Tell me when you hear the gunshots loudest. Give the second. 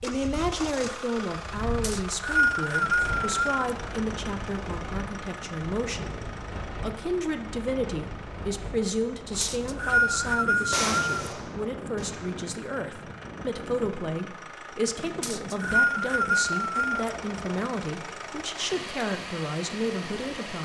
11 s.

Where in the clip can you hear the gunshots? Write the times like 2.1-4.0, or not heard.
10.7-12.4.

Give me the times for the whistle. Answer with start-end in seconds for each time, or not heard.
1.8-3.5, 9.4-11.1, 15.2-17.1.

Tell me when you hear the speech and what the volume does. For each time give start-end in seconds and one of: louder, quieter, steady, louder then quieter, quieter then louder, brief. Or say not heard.
0.0-20.6 steady.